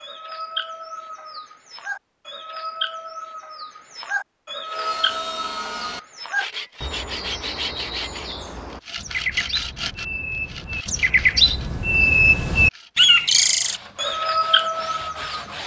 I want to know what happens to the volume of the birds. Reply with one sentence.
The volume of the birds goes up.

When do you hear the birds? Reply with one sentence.
You can hear the birds from 0.0 to 15.6 s.